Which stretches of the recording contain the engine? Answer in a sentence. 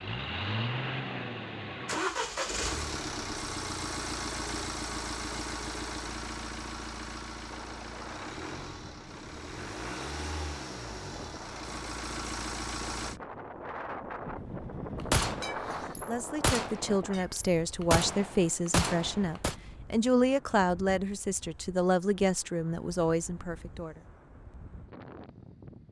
You can hear the engine from 0.0 to 13.2 s.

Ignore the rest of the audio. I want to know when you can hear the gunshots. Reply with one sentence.
You can hear the gunshots from 15.0 to 19.6 s.